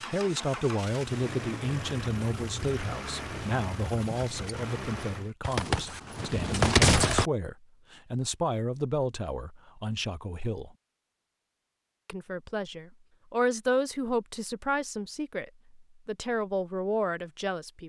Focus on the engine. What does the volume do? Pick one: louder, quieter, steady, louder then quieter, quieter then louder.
steady.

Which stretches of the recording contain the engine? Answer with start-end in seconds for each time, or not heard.
0.0-5.3.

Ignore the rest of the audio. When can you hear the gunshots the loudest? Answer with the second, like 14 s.
7 s.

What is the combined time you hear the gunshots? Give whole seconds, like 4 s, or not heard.
2 s.